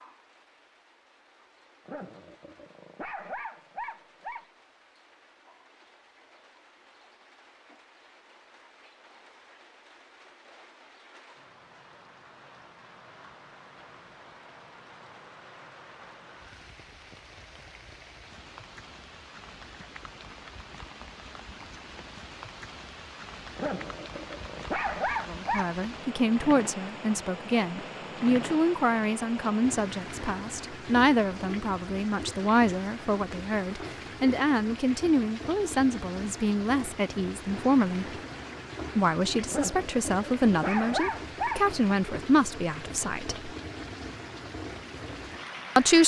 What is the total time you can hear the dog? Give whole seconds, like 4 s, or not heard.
7 s.